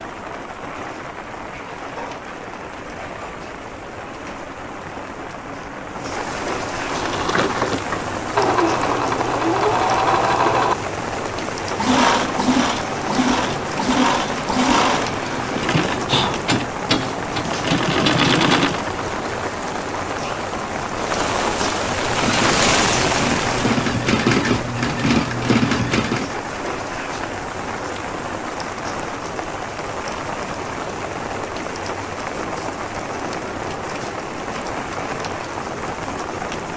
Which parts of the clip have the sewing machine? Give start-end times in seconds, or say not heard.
6.8-19.1, 21.8-26.4.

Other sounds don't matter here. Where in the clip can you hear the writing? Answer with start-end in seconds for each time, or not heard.
not heard.